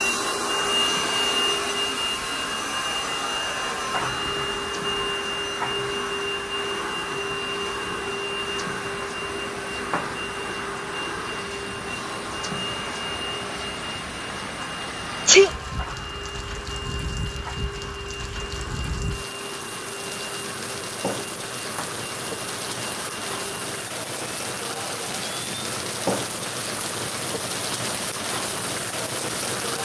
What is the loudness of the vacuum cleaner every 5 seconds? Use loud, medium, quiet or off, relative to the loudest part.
loud, loud, medium, medium, quiet, off.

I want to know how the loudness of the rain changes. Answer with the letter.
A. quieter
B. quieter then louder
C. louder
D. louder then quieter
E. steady
C.